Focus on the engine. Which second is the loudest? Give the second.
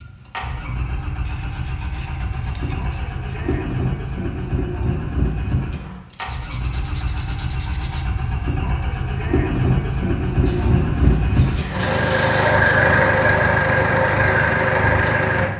13 s.